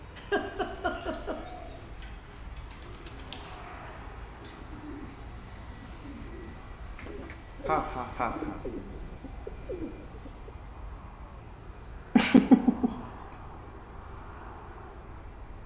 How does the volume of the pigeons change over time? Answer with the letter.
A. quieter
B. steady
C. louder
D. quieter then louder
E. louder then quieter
C.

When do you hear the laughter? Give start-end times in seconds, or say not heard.
0.1-1.4, 7.7-8.6, 12.2-13.4.